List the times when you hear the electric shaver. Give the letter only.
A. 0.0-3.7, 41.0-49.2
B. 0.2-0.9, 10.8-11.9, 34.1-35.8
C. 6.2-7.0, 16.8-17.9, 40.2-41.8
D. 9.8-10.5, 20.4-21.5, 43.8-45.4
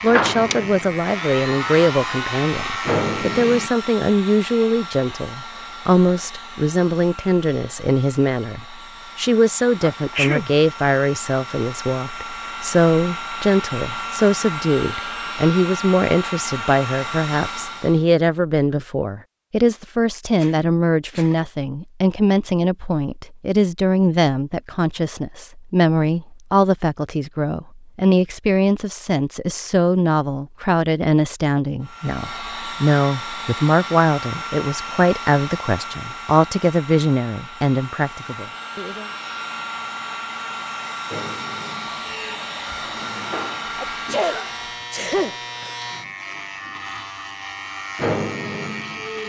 A.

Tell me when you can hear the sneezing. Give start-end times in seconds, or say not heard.
9.8-10.5, 20.4-21.5, 43.8-45.4.